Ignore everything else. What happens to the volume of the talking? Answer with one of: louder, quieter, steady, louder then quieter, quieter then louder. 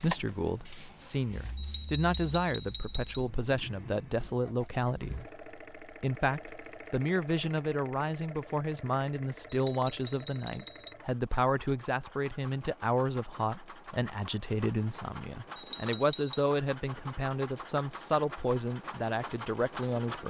steady.